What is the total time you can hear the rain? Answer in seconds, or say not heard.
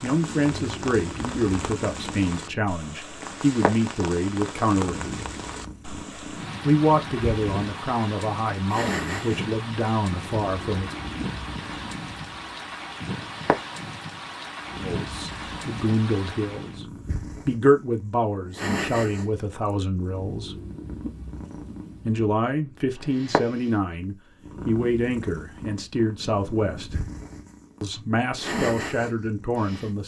17 s.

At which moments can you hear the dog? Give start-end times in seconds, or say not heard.
not heard.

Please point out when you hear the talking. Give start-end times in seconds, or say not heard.
0.0-5.2, 6.6-10.9, 14.8-20.6, 22.1-27.1, 27.8-30.0.